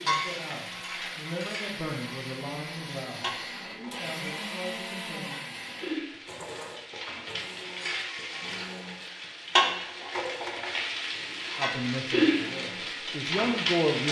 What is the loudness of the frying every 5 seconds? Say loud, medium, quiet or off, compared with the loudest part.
medium, loud, loud.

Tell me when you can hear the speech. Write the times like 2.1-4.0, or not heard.
0.0-5.3, 11.6-14.0.